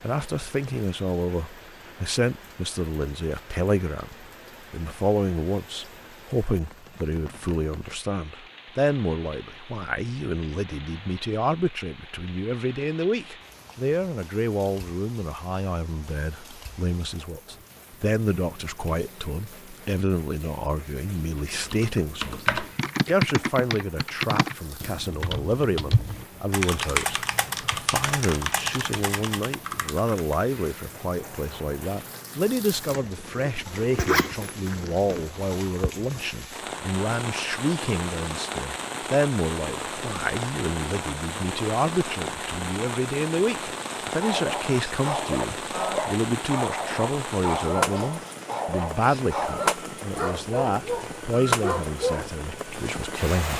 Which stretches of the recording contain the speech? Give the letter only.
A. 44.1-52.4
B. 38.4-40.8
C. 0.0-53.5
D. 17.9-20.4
C.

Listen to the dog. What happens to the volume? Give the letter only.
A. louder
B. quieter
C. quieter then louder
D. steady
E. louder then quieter
D.